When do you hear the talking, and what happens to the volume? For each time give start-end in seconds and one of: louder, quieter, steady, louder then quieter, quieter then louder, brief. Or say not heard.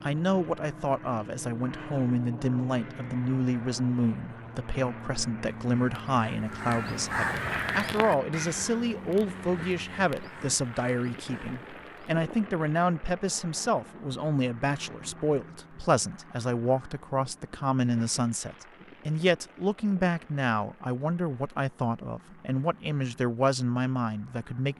0.0-24.7 steady.